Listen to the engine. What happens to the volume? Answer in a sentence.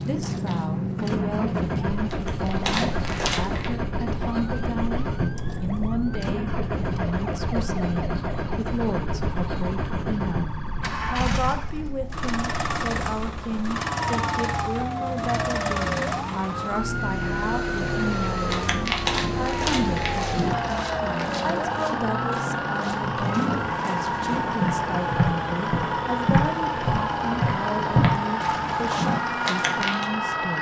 The volume of the engine stays about the same.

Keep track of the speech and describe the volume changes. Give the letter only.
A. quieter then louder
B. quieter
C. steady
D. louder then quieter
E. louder
C.